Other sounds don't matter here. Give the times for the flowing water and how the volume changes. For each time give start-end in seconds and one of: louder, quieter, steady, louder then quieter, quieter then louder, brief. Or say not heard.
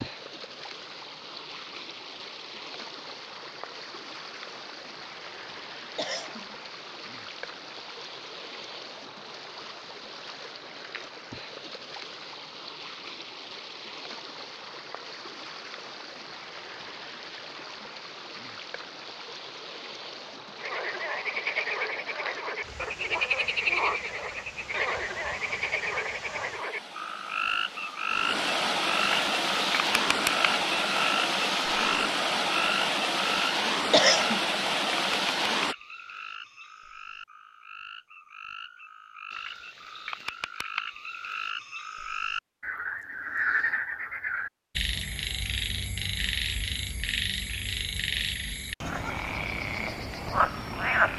0.0-35.8 louder.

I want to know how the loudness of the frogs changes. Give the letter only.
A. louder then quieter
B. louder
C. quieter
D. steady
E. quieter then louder
E.